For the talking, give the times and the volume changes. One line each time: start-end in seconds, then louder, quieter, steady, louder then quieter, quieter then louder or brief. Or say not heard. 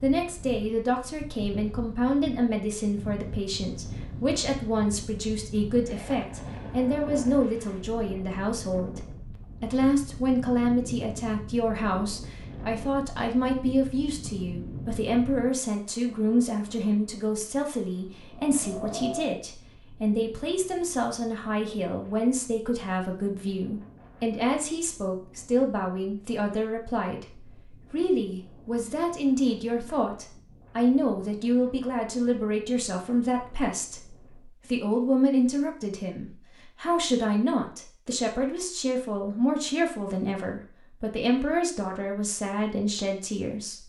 0.0-9.0 steady
9.6-43.8 steady.